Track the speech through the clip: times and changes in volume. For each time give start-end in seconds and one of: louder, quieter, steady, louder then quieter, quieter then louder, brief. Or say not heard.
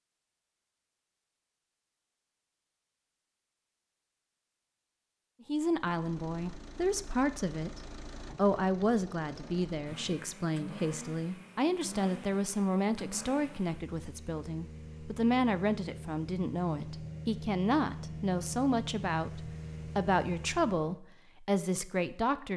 5.5-22.5 steady.